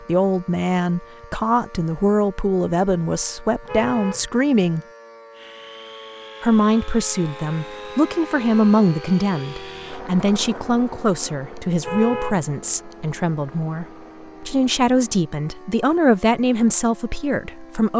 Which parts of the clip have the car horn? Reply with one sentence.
The car horn can be heard from 3.6 to 4.5 s and from 11.8 to 12.4 s.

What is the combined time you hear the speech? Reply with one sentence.
You can hear the speech for 16 seconds altogether.